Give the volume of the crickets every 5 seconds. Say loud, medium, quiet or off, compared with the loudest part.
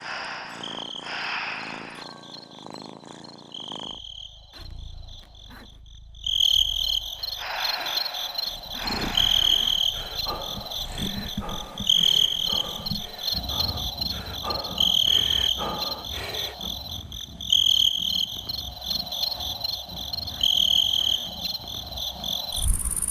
quiet, loud, loud, loud, loud.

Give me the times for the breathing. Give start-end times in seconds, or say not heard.
0.0-2.0, 7.2-16.7.